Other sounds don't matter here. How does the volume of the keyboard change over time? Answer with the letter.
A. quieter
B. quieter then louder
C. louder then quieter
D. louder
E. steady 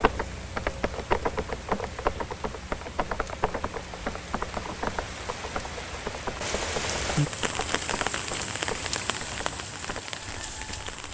A.